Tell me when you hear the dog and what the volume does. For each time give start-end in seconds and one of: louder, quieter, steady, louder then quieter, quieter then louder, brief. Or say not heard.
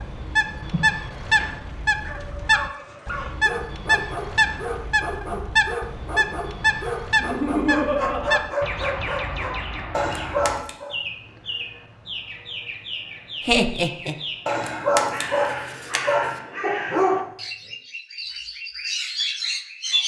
2.0-10.9 louder
14.4-17.3 brief.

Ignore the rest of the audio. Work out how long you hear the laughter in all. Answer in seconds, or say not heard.
3 s.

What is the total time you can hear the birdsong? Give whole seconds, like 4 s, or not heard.
20 s.